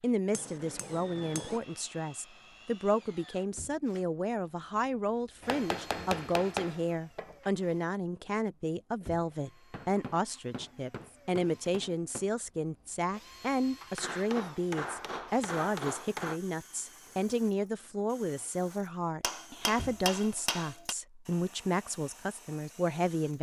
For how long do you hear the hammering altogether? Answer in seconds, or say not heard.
10 s.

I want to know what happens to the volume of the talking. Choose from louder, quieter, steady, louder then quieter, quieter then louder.
steady.